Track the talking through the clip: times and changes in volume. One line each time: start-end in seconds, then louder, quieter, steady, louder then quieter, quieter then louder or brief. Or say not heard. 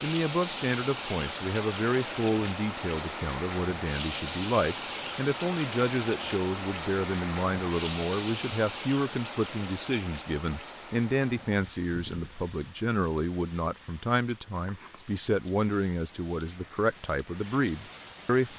0.0-18.5 steady.